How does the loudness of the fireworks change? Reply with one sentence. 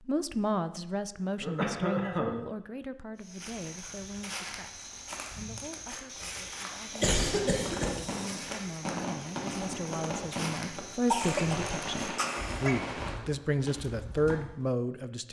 The volume of the fireworks stays about the same.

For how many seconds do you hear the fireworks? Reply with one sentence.
You can hear the fireworks for 6 seconds altogether.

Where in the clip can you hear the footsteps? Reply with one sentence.
You can hear the footsteps from 3.1 to 14.4 s.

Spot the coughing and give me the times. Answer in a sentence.
You can hear the coughing from 1.4 to 2.4 s, from 7.0 to 7.9 s and from 11.1 to 12.8 s.